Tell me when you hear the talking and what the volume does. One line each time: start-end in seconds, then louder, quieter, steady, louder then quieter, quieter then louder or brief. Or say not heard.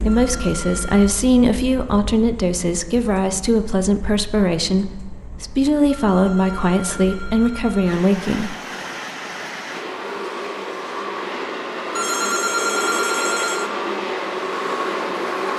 0.0-8.6 steady.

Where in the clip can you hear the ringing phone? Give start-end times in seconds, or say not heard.
0.1-1.1, 5.8-7.9, 11.9-13.7.